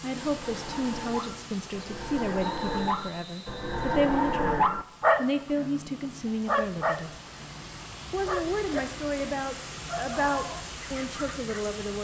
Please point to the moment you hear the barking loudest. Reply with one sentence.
The volume of the barking peaks at 5 seconds.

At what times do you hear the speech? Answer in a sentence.
The speech can be heard from 0.0 to 7.1 s and from 8.1 to 11.9 s.